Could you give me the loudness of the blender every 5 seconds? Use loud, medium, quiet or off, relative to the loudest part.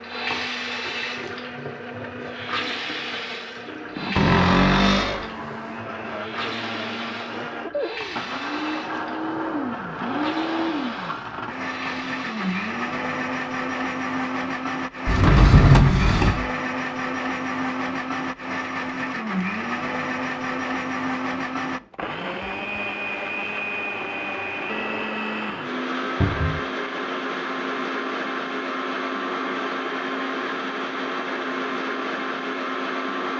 medium, loud, loud, loud, loud, loud, loud.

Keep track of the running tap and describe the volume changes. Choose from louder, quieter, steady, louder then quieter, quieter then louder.
quieter.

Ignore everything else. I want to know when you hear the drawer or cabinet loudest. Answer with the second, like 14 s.
16 s.